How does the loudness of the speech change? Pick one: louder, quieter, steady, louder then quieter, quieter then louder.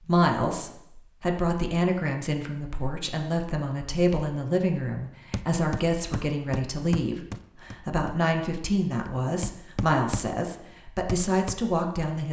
steady.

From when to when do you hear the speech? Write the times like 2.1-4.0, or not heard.
0.1-12.2.